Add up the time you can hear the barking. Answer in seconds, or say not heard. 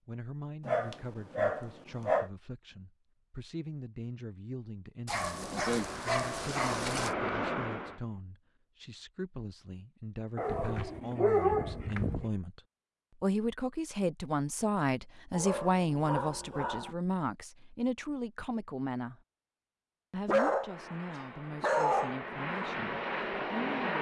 9 s.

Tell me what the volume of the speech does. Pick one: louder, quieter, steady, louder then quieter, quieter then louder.
louder then quieter.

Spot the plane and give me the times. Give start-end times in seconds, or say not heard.
5.2-8.2, 20.6-23.9.